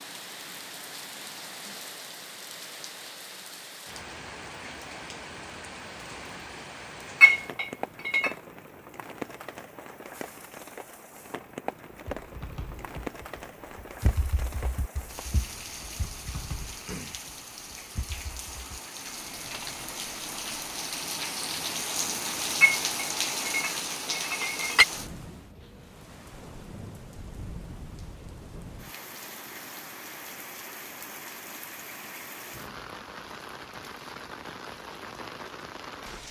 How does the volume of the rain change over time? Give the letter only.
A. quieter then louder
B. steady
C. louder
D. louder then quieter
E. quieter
D.